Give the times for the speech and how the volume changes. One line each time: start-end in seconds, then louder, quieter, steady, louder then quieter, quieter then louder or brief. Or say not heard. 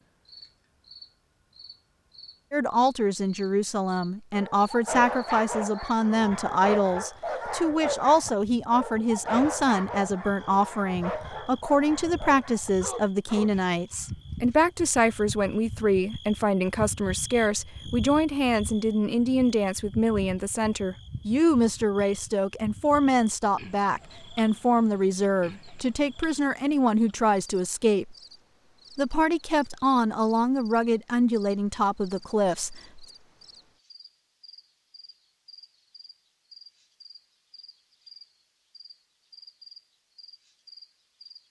2.5-28.1 steady
28.9-33.0 steady.